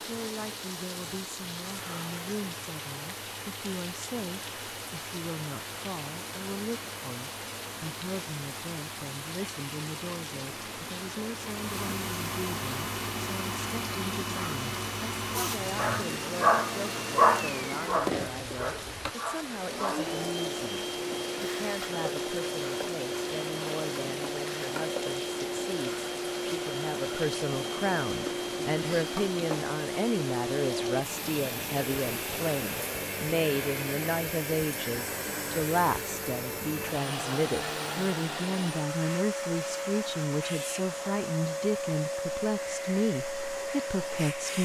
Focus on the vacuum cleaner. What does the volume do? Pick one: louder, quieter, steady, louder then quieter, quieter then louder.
louder.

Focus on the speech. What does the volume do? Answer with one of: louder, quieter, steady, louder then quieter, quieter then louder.
louder.